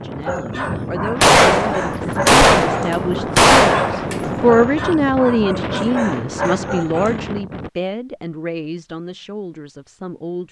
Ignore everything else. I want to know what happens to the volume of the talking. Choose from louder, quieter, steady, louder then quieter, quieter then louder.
louder then quieter.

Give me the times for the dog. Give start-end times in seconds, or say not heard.
0.2-7.2.